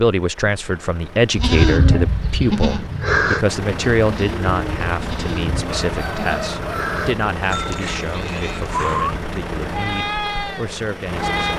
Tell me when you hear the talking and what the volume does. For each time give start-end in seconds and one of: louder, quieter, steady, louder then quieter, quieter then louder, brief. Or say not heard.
0.0-11.4 quieter.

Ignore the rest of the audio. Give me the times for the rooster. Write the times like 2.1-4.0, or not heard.
5.7-7.2.